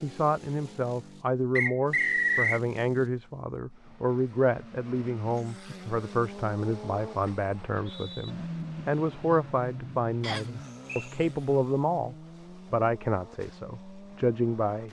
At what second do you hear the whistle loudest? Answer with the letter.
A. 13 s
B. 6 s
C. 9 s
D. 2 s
D.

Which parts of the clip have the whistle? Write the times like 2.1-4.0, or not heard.
1.6-2.6, 7.5-8.3, 10.2-11.1.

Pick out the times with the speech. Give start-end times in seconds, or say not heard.
0.0-14.8.